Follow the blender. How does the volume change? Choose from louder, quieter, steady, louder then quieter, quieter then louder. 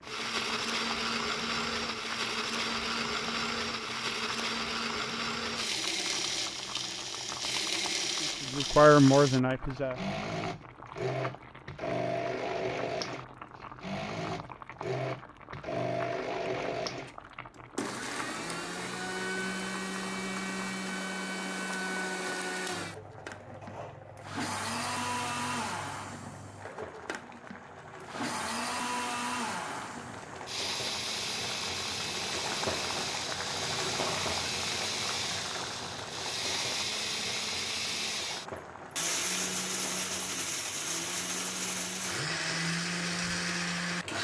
steady.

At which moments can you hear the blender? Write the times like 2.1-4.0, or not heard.
0.0-44.1.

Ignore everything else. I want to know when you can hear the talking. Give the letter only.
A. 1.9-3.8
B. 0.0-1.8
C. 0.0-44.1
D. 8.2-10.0
D.